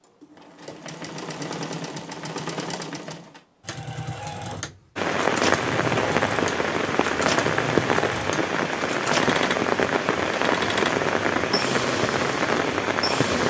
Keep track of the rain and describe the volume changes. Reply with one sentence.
The volume of the rain stays about the same.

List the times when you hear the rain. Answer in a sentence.
The rain can be heard from 5.0 to 13.4 s.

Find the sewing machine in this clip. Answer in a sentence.
The sewing machine can be heard from 0.0 to 13.4 s.